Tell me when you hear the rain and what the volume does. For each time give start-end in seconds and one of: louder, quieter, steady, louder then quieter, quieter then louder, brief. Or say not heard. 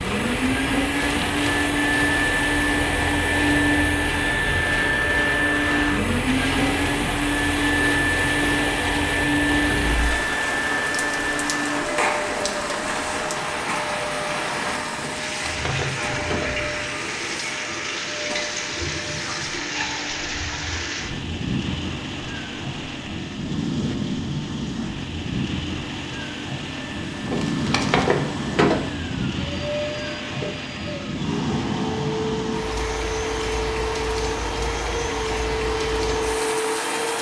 0.0-37.1 steady.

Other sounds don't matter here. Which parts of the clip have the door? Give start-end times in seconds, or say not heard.
9.7-10.1, 14.9-16.6, 27.2-28.8.